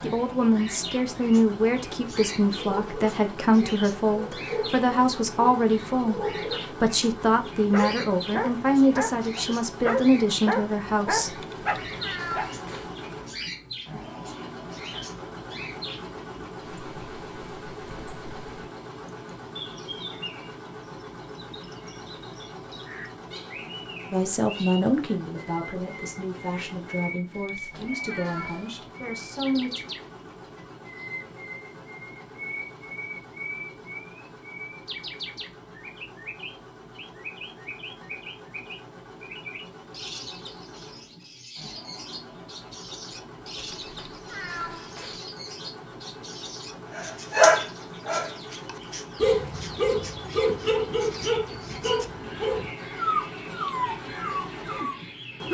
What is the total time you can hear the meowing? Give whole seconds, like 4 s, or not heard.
5 s.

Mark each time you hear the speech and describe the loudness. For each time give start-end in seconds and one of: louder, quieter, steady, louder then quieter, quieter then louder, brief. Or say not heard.
0.0-11.4 steady
24.1-29.9 quieter.